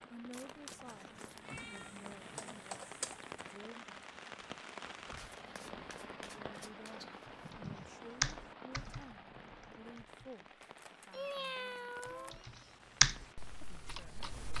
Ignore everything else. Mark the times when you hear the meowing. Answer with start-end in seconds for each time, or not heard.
0.7-2.6, 7.0-8.2, 11.1-12.4.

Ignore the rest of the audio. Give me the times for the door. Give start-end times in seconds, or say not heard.
not heard.